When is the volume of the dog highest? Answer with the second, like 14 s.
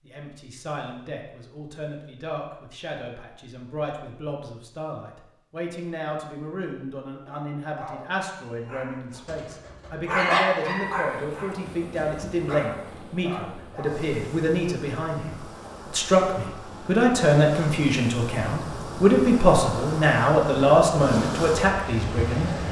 10 s.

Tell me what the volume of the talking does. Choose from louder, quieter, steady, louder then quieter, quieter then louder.
louder.